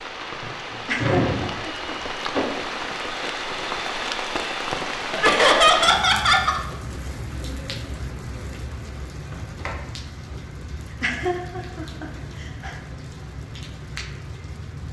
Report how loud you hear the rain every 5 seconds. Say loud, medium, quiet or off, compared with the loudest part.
loud, loud, medium.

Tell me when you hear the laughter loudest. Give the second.
6 s.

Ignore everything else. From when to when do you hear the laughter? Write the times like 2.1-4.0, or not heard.
0.8-1.9, 5.2-6.6, 11.0-12.7.